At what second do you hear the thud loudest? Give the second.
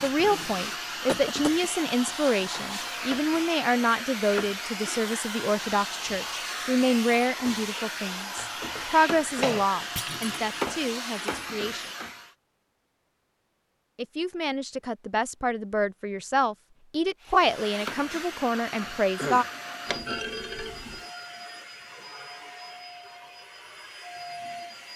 20 s.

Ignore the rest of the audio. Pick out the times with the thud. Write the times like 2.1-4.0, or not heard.
9.9-10.4, 19.9-21.0.